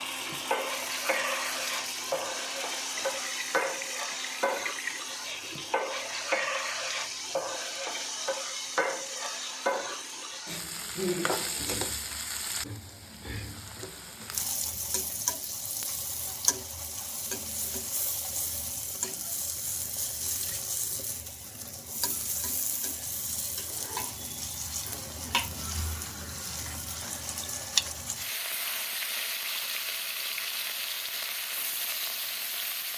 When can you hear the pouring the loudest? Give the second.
5 s.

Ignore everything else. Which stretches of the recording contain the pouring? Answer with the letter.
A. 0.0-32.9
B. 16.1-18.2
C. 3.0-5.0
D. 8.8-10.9
C.